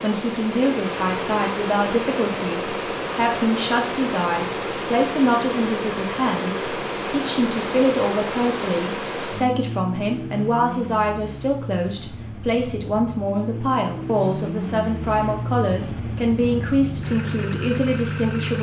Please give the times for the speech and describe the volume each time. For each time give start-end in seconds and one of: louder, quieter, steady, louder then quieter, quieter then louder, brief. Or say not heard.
0.0-18.5 steady.